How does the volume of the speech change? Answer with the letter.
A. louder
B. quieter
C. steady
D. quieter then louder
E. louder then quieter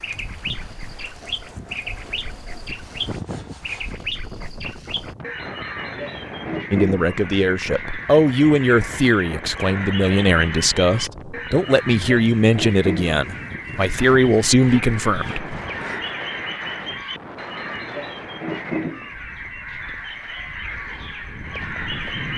C.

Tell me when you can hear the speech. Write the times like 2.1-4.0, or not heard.
6.7-15.6.